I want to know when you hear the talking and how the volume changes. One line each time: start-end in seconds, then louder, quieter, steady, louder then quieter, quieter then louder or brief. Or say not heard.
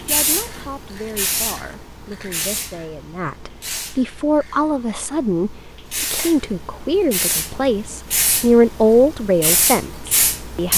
0.1-10.7 louder.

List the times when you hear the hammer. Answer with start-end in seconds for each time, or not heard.
not heard.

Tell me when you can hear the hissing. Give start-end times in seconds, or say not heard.
0.0-10.7.